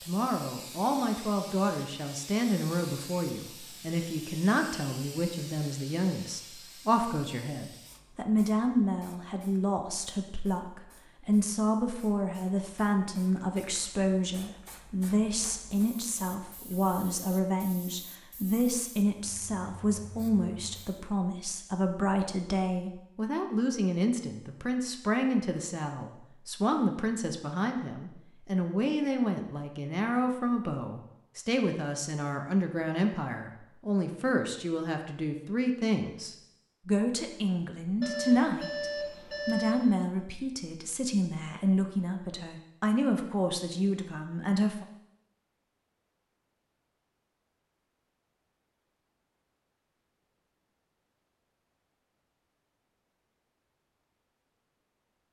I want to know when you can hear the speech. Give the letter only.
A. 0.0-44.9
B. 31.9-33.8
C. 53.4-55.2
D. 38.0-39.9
A.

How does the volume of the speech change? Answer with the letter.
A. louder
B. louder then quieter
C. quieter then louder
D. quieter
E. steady
E.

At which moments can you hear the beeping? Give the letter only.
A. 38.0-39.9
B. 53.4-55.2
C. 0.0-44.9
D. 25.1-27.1
A.